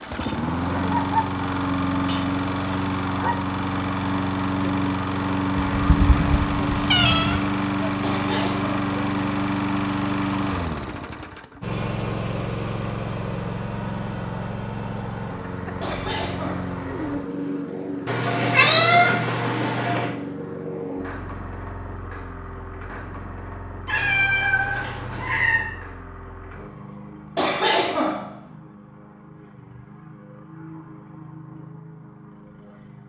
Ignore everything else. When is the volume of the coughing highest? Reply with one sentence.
The loudest moment of the coughing is at 28 seconds.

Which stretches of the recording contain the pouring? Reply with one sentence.
The pouring can't be heard in this clip.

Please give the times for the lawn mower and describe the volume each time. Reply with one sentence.
The lawn mower can be heard from 0.0 to 33.0 s, getting quieter.